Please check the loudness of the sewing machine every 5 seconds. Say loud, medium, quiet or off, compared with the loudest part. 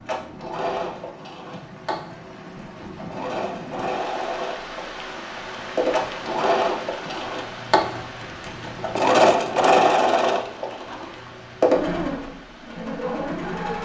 medium, loud, loud.